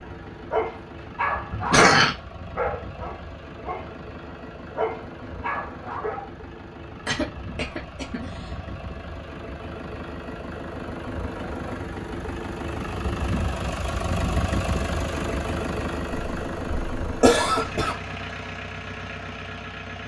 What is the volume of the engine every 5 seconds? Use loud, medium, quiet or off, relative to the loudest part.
medium, medium, loud, loud.